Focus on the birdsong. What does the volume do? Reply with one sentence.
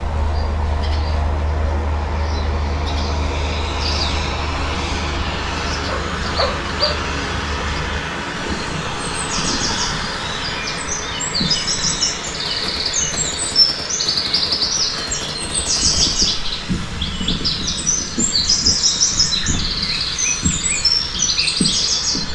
The volume of the birdsong goes up.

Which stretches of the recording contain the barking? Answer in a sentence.
The barking can be heard from 5.8 to 6.9 s.